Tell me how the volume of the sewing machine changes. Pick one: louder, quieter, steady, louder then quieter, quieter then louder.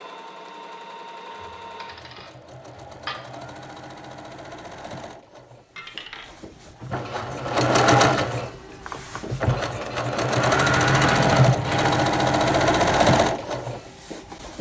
louder.